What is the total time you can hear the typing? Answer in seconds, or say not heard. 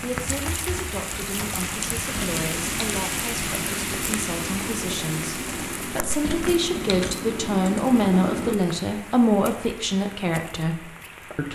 8 s.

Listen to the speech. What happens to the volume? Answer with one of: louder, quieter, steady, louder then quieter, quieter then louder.
louder.